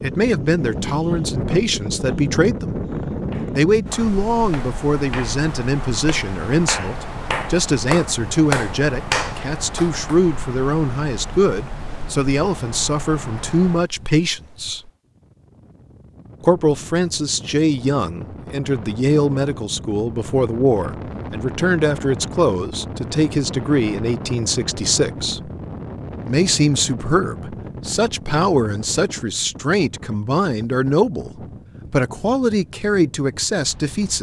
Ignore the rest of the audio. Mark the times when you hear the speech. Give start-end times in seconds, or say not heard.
0.0-2.9, 3.5-14.9, 16.4-25.5, 26.2-31.3, 31.9-34.1.